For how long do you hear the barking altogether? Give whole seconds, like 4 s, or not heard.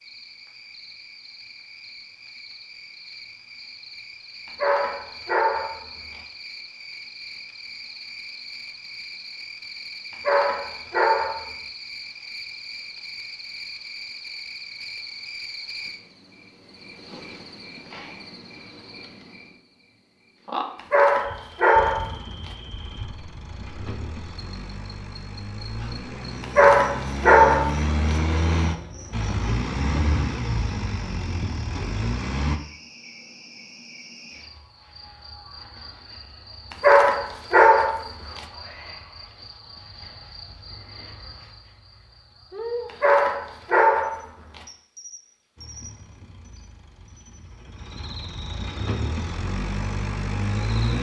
10 s.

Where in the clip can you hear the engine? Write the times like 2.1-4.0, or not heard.
21.8-32.6, 45.5-50.9.